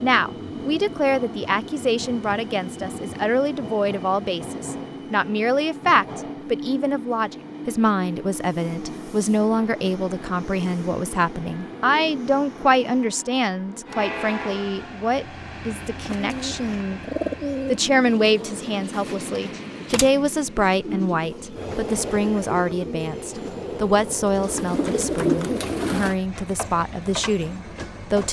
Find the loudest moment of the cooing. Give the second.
25 s.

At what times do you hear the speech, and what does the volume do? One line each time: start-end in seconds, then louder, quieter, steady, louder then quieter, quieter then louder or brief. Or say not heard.
0.0-28.2 steady.